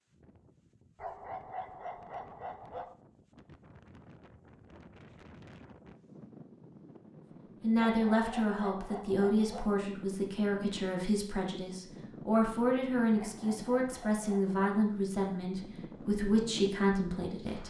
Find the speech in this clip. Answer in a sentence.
You can hear the speech from 7.6 to 17.6 s.